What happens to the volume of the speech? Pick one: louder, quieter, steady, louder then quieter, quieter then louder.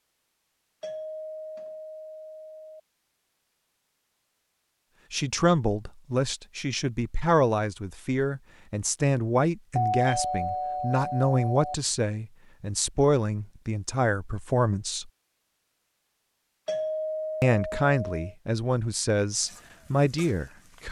steady.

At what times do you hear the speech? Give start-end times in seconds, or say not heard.
5.1-15.1, 17.4-20.8.